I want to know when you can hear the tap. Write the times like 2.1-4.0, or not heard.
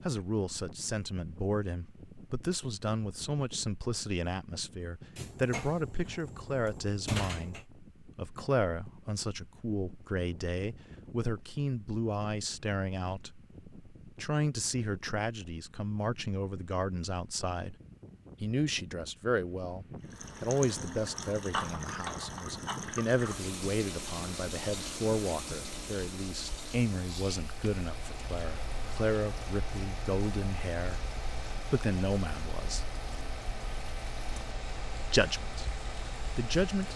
20.0-36.9.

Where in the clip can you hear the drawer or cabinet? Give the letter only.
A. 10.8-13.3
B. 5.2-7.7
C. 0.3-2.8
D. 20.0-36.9
B.